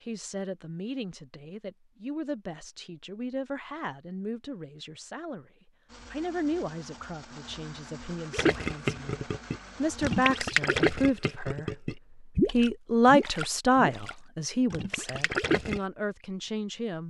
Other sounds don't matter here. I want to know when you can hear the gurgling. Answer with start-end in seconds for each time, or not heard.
8.3-15.8.